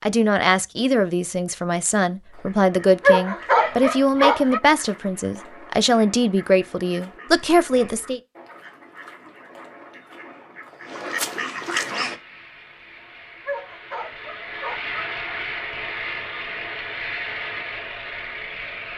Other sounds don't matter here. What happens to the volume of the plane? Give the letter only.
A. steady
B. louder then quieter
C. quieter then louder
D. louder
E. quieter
D.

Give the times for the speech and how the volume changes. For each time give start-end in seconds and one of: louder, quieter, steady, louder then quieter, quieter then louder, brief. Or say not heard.
0.0-8.2 steady.